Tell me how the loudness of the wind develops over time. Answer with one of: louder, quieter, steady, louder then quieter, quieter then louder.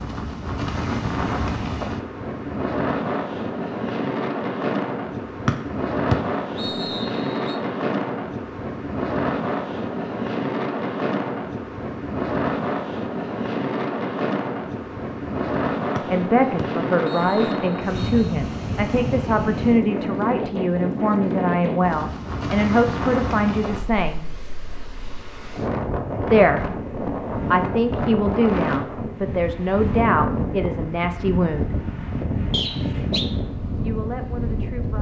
steady.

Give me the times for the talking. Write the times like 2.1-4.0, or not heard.
16.1-24.3, 26.3-31.8, 33.8-34.9.